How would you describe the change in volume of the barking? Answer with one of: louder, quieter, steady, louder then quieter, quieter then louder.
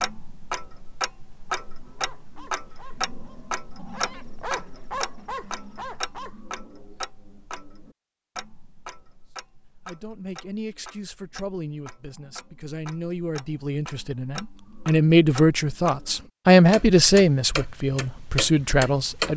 quieter then louder.